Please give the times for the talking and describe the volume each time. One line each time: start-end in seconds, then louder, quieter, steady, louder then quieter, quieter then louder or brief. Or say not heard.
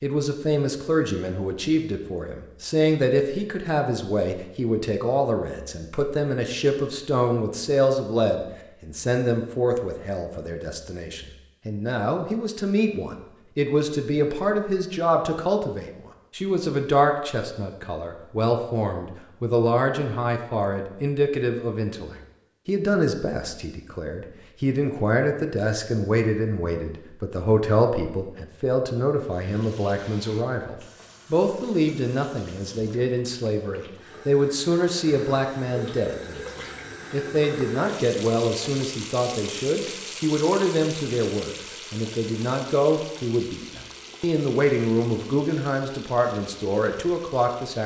0.0-47.8 steady.